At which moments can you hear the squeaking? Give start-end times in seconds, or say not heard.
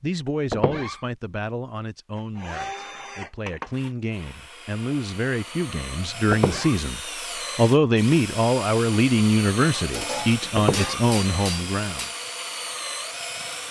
0.5-1.0, 6.3-6.8, 10.6-11.1.